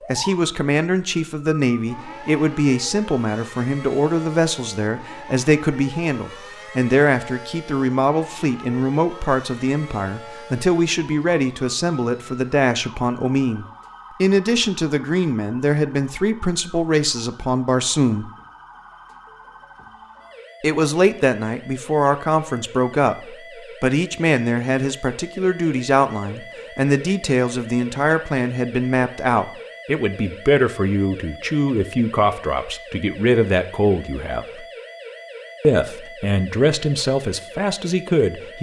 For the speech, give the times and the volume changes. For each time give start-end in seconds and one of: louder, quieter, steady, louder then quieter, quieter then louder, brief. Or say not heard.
0.1-18.3 steady
20.6-34.6 steady
35.6-38.5 brief.